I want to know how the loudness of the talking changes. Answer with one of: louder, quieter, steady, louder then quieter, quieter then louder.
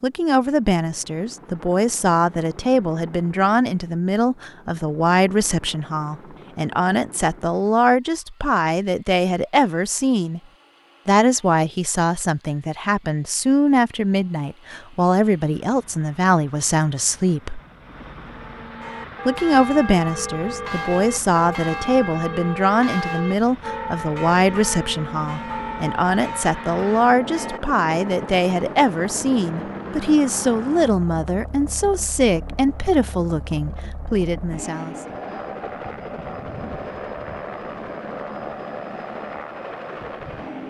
steady.